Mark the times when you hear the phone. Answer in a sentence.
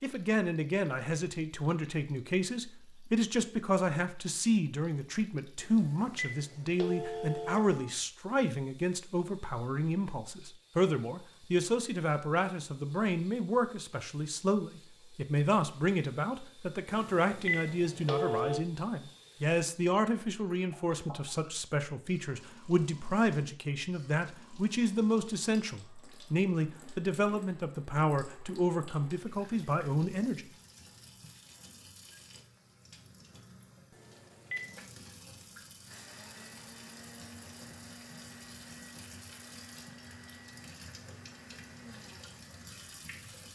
You can hear the phone from 5.6 to 7.8 s, from 16.9 to 18.6 s and from 33.9 to 34.8 s.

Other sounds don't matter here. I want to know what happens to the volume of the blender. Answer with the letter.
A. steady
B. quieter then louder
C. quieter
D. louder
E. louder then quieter
A.